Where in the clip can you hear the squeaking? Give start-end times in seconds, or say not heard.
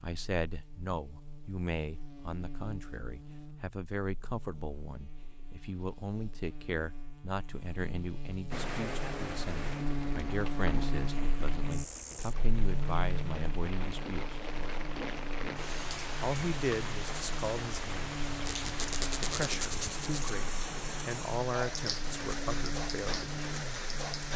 18.4-20.4.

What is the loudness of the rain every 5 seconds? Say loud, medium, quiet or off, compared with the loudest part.
off, loud, medium, loud, loud.